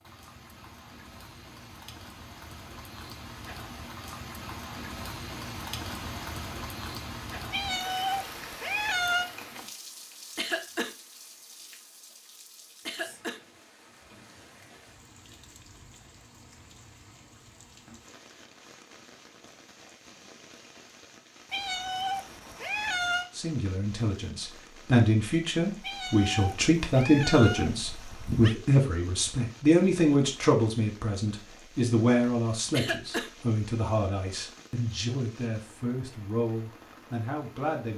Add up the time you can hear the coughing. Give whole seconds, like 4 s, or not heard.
2 s.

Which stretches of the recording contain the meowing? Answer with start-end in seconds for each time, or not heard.
7.5-9.2, 21.5-23.3, 25.8-28.6.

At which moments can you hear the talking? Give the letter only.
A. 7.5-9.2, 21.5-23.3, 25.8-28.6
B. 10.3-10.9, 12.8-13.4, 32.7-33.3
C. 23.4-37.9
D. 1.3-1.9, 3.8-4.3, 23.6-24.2
C.